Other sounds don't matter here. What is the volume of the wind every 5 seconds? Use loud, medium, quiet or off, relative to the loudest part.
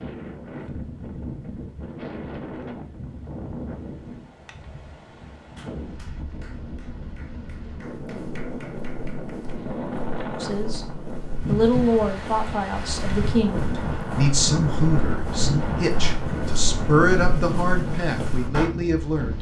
medium, medium, loud, loud.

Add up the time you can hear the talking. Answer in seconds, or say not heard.
8 s.